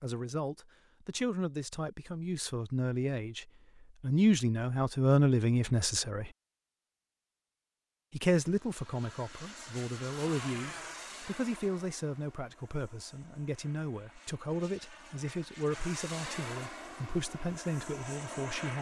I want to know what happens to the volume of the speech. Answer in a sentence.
The volume of the speech goes up, then down.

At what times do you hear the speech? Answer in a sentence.
You can hear the speech from 0.0 to 6.3 s and from 8.1 to 18.7 s.